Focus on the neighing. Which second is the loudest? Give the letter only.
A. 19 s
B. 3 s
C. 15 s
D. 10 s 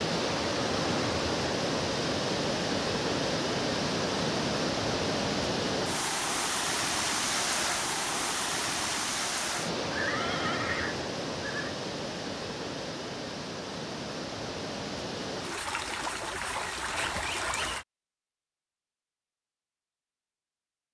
D.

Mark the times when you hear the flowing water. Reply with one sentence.
The flowing water can be heard from 0.0 to 17.9 s.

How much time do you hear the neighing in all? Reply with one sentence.
The neighing can be heard for 2 seconds in total.